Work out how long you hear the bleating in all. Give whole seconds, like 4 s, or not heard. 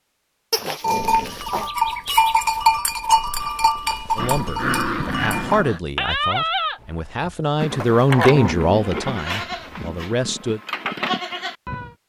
11 s.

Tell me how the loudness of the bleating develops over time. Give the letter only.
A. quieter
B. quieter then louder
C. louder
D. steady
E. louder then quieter
A.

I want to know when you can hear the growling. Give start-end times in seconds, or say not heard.
0.5-1.7, 4.2-5.8, 8.1-9.9.